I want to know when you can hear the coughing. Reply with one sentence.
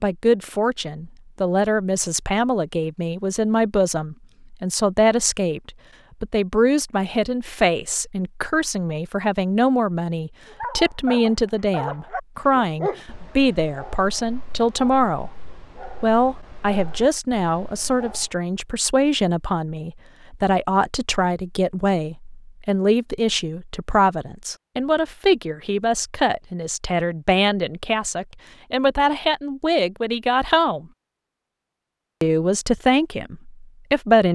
The coughing can't be heard in this clip.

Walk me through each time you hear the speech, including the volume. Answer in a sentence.
The speech can be heard from 0.0 to 15.3 s, at a steady volume; from 16.0 to 30.9 s, at a steady volume; and briefly from 32.2 to 34.3 s.